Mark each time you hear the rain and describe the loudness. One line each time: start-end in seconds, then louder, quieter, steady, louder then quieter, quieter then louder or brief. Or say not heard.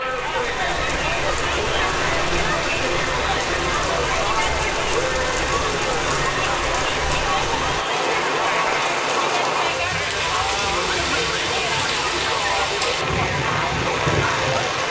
0.0-14.8 steady.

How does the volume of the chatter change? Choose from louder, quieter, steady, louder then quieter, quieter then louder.
steady.